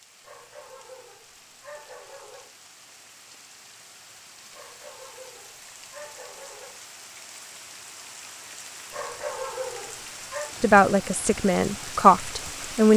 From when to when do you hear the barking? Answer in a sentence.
The barking can be heard from 0.2 to 2.5 s, from 4.5 to 6.8 s and from 8.9 to 10.6 s.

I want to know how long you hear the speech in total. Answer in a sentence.
You can hear the speech for 2 seconds altogether.